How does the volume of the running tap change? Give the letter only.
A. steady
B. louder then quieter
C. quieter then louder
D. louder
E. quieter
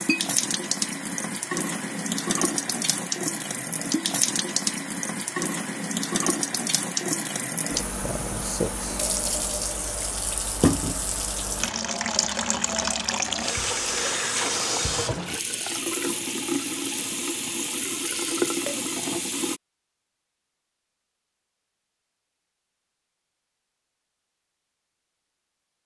A.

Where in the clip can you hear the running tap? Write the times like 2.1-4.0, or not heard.
0.0-19.6.